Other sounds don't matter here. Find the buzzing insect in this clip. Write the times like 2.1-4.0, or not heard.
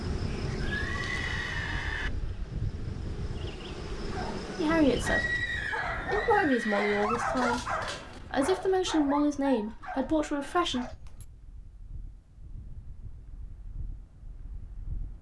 0.0-5.5.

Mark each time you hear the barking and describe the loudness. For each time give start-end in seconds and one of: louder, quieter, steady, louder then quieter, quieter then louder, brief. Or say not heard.
4.1-10.9 louder then quieter.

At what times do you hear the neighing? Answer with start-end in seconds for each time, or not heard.
0.6-2.1, 5.0-7.0, 10.7-11.2.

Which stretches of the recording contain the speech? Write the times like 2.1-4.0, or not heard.
4.5-5.4, 6.1-10.8.